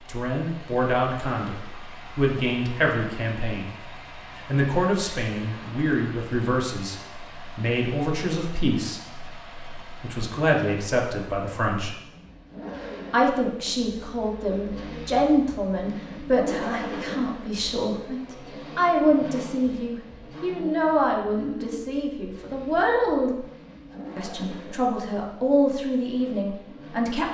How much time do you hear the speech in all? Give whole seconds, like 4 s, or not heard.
25 s.